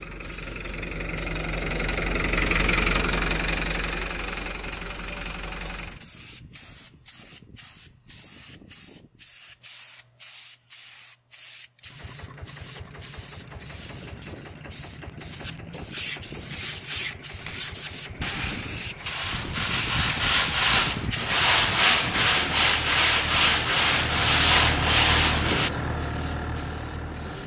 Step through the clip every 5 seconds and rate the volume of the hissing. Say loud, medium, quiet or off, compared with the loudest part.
quiet, quiet, quiet, medium, loud, quiet.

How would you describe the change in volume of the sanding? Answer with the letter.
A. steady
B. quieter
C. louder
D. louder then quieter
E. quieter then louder
C.